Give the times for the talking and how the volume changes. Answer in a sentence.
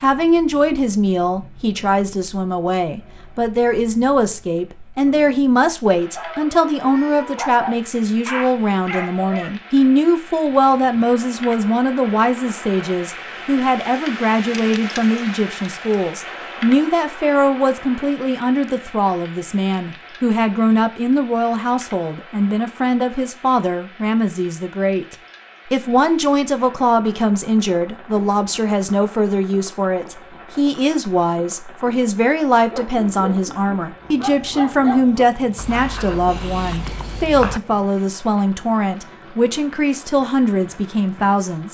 The talking can be heard from 0.0 to 41.6 s, at a steady volume.